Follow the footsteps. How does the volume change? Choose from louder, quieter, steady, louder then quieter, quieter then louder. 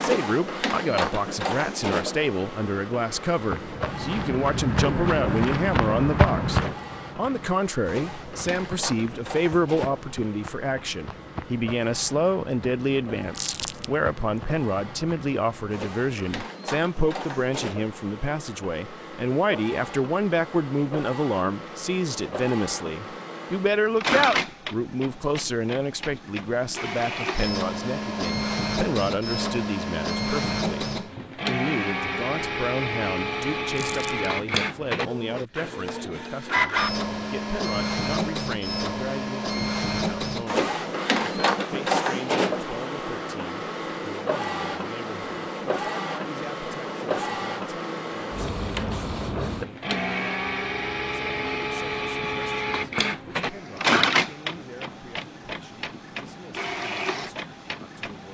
quieter.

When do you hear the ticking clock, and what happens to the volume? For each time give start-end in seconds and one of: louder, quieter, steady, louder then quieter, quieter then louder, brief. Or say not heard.
not heard.